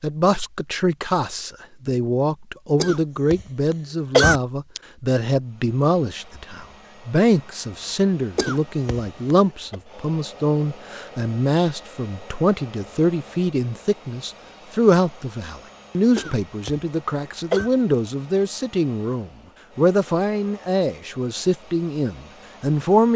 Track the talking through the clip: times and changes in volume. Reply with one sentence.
The talking can be heard from 0.0 to 23.1 s, at a steady volume.